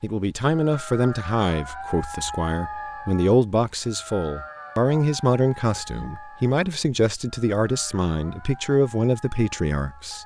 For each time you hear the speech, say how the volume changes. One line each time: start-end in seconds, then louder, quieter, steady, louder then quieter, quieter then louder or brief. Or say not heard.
0.0-10.2 steady.